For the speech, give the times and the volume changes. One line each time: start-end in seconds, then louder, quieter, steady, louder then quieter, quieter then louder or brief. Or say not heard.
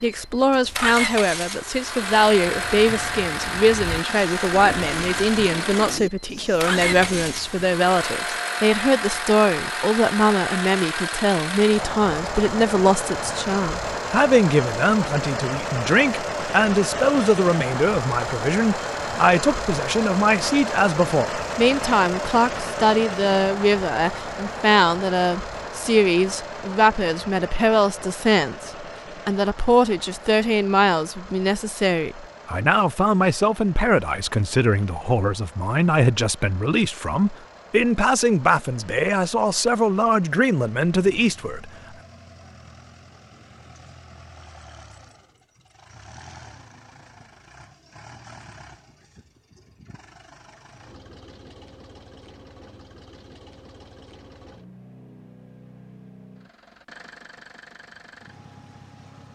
0.0-41.7 steady.